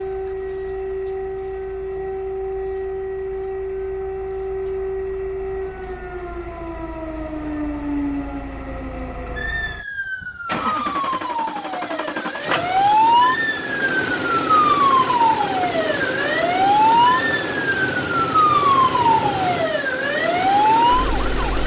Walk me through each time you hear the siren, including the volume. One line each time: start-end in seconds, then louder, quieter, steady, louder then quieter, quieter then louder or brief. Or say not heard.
0.0-21.6 louder.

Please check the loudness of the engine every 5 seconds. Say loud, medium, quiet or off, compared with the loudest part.
quiet, quiet, loud, loud, loud.